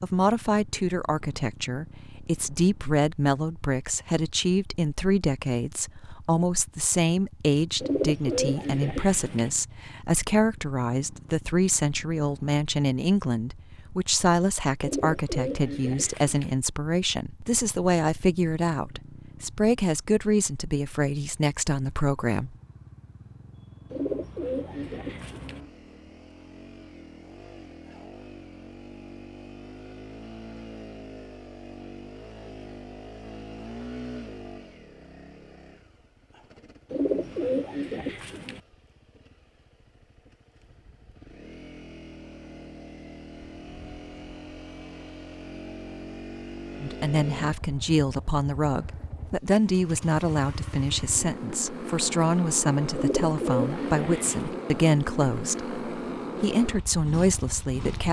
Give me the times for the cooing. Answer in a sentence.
You can hear the cooing from 7.8 to 9.5 s, from 14.8 to 16.6 s, from 23.9 to 25.6 s, from 36.9 to 38.6 s and from 53.0 to 54.5 s.